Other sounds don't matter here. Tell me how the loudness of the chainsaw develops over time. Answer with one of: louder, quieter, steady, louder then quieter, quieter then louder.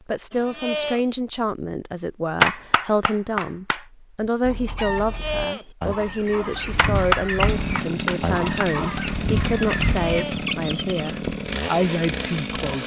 steady.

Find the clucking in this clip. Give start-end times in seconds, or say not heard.
4.2-11.1.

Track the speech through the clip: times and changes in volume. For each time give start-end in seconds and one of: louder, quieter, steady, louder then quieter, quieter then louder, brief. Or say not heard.
0.1-12.8 steady.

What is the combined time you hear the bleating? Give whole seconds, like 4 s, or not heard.
2 s.